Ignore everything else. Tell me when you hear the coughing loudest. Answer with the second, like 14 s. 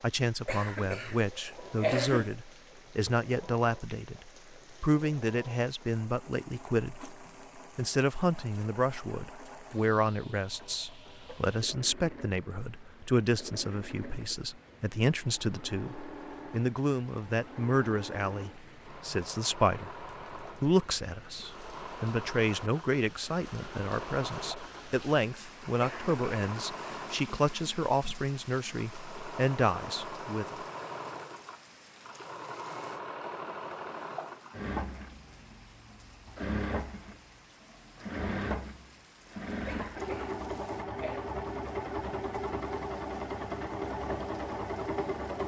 2 s.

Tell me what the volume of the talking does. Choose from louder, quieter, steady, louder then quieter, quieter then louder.
steady.